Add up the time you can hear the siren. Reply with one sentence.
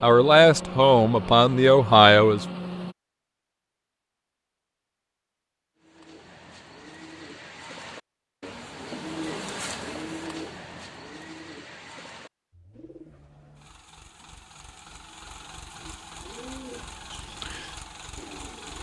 The siren can't be heard in this clip.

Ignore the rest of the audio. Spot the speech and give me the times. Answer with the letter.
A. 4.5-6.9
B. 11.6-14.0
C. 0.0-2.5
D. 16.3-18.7
C.